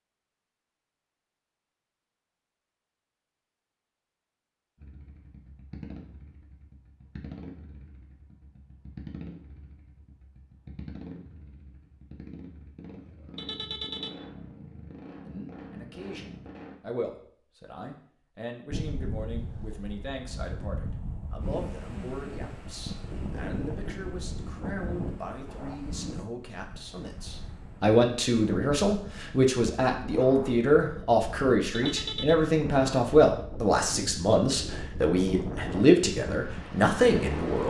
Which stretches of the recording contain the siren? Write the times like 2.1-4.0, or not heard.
not heard.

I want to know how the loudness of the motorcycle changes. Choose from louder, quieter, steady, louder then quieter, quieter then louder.
steady.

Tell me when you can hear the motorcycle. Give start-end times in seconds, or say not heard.
4.8-16.8.